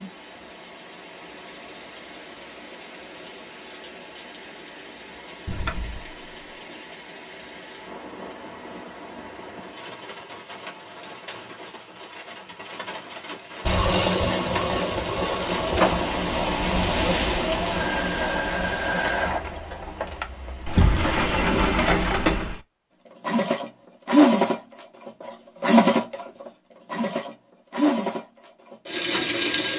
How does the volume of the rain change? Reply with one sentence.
The volume of the rain goes up.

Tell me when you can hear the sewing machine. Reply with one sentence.
You can hear the sewing machine from 13.7 to 20.2 s and from 23.2 to 29.7 s.